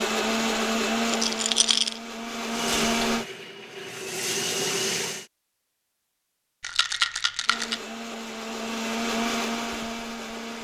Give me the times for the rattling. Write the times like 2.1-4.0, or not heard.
1.1-1.9, 6.6-7.8.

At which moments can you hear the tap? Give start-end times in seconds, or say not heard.
2.5-5.2.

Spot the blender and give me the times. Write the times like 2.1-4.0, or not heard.
0.0-3.2, 7.5-10.5.